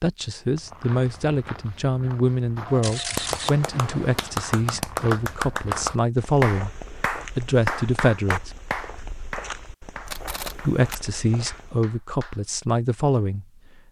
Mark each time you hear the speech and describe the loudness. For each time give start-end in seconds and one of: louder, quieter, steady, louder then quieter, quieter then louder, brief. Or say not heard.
0.0-6.8 steady
7.3-8.5 brief
10.7-13.4 brief.